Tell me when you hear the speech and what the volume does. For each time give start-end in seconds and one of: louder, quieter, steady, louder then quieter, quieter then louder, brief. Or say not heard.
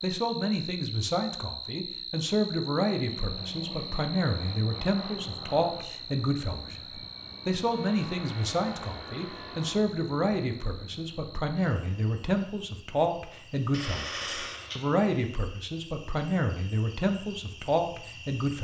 0.0-18.5 steady.